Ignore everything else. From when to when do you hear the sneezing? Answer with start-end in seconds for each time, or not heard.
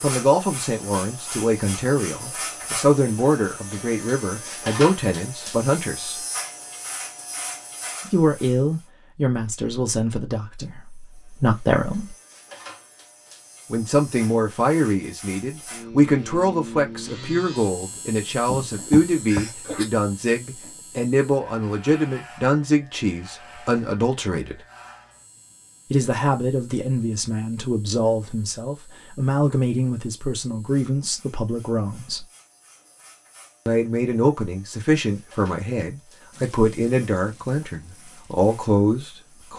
18.4-19.9.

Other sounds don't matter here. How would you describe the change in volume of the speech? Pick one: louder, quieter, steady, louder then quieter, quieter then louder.
steady.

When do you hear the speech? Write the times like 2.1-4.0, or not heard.
0.0-6.2, 8.1-12.2, 13.7-24.6, 25.9-32.2, 33.6-39.5.